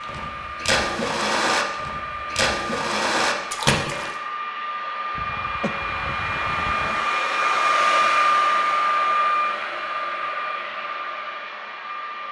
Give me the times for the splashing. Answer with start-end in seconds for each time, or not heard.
0.0-4.2.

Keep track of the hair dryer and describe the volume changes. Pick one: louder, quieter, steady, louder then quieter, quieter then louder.
louder then quieter.